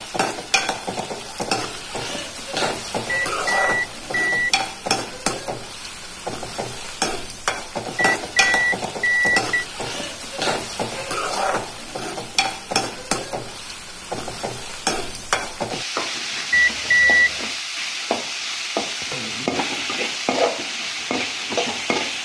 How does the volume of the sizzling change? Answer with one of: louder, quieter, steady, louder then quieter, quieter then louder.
steady.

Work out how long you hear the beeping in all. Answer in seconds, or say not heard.
4 s.